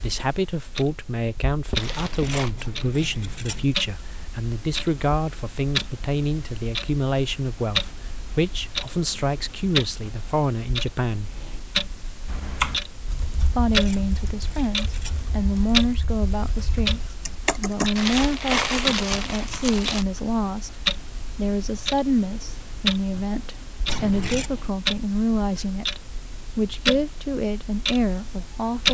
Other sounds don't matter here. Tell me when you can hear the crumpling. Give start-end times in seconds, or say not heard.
1.8-2.5, 17.9-20.1.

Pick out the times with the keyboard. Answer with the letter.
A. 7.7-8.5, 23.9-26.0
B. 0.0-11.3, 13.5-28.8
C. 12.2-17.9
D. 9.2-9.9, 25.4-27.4
C.